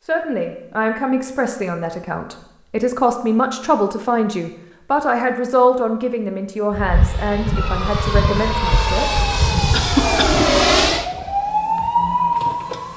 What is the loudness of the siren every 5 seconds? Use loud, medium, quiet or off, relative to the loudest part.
off, medium, loud.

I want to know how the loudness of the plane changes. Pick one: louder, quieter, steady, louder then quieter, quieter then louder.
louder.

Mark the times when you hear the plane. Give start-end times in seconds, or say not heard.
6.7-11.1.